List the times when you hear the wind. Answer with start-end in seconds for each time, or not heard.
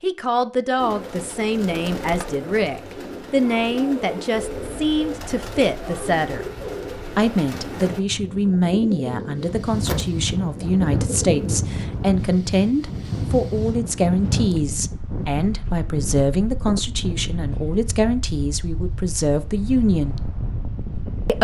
4.3-21.3.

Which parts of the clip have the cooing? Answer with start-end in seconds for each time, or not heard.
0.8-11.6.